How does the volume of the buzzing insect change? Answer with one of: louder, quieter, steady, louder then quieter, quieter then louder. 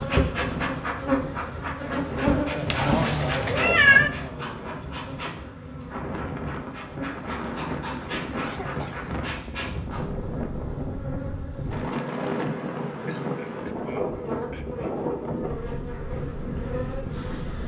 quieter.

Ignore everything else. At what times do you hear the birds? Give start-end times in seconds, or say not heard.
not heard.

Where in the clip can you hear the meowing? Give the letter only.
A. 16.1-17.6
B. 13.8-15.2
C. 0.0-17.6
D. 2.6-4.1
D.